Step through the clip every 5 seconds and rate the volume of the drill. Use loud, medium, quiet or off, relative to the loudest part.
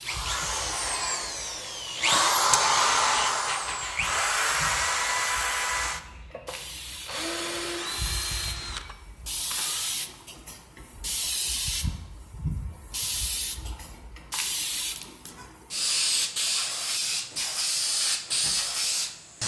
loud, medium, off, off.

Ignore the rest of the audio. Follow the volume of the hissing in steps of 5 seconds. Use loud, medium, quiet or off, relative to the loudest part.
quiet, medium, medium, loud.